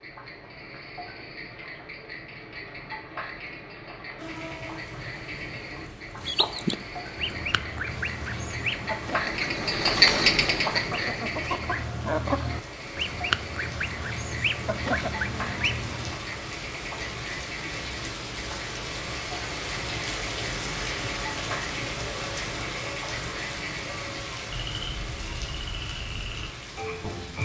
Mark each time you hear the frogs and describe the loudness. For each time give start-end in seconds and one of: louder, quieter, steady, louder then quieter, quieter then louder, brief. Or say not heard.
0.0-27.4 louder then quieter.